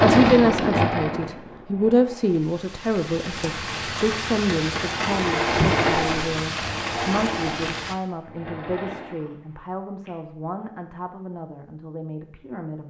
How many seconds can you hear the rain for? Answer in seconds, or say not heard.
8 s.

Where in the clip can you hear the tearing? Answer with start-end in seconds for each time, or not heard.
not heard.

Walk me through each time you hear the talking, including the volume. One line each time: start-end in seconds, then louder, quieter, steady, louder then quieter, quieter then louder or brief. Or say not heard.
0.0-12.8 quieter.